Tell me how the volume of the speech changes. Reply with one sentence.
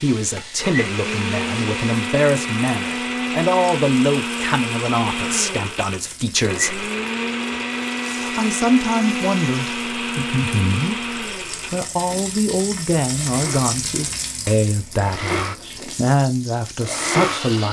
The loudness of the speech stays about the same.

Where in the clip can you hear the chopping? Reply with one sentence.
The chopping can't be heard in this clip.